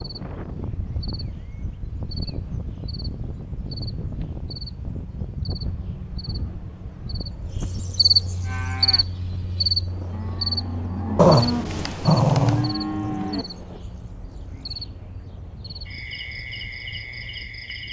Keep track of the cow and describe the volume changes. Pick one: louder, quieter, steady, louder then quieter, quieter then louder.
louder.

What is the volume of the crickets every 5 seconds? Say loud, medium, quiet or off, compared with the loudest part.
quiet, loud, medium, medium.